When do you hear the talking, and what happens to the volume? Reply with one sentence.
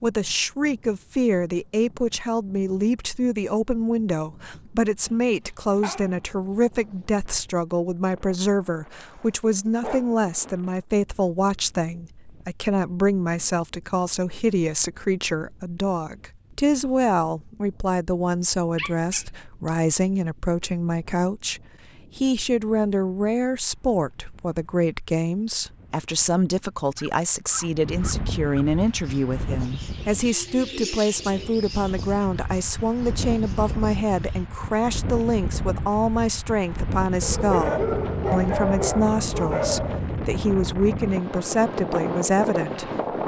The talking can be heard from 0.0 to 42.9 s, at a steady volume.